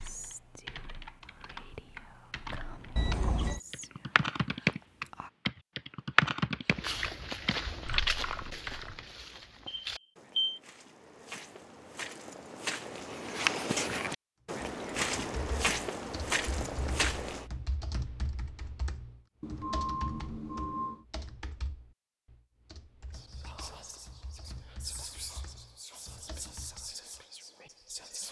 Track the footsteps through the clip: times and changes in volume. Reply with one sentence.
The footsteps can be heard from 6.7 to 17.4 s, getting quieter then louder.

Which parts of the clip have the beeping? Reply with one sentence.
You can hear the beeping from 3.0 to 3.6 s, from 9.7 to 10.6 s and from 19.4 to 21.1 s.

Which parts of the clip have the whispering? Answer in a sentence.
The whispering can be heard from 0.0 to 5.3 s and from 23.1 to 28.2 s.